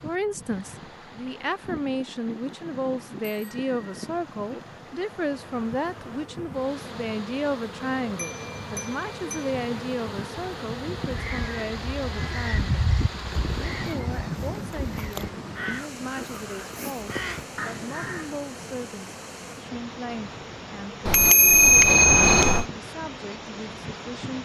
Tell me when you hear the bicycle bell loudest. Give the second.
22 s.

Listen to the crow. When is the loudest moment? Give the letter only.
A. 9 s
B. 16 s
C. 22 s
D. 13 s
D.